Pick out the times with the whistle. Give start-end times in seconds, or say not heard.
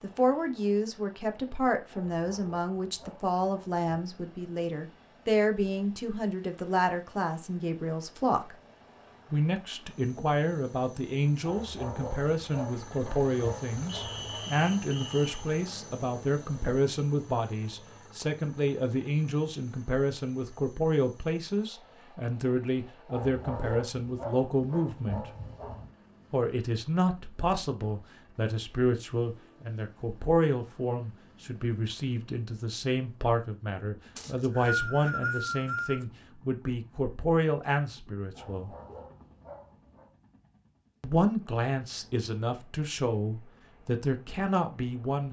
13.9-15.3, 34.1-36.0.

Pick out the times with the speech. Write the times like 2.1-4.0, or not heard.
0.0-8.6, 9.3-25.2, 26.3-38.7, 41.0-45.2.